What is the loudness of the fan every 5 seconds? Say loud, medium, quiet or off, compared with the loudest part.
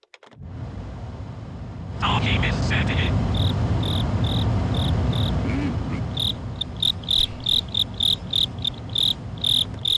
loud, medium.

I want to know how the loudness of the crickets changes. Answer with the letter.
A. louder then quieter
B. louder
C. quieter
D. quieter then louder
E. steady
B.